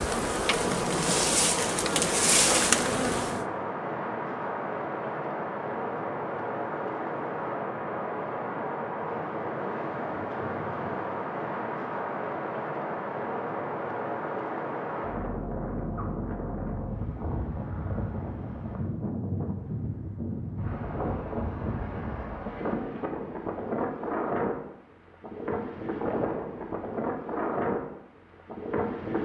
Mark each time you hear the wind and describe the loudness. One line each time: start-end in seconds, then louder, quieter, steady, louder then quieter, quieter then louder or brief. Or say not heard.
0.0-29.1 steady.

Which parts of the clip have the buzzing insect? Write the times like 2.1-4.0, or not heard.
0.0-3.5.